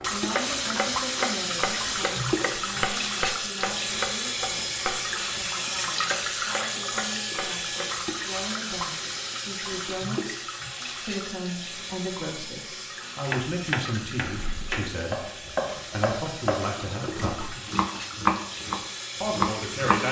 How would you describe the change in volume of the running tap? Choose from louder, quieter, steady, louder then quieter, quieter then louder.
quieter.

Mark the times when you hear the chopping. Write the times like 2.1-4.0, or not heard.
0.0-7.8, 13.2-20.0.